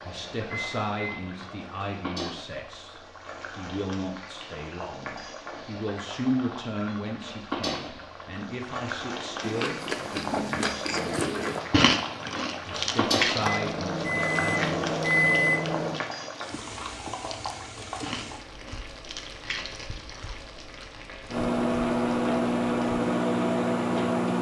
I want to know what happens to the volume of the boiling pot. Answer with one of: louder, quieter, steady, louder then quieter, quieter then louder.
louder then quieter.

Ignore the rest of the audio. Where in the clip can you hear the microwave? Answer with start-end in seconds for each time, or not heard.
0.0-1.9, 12.3-16.0, 21.3-24.3.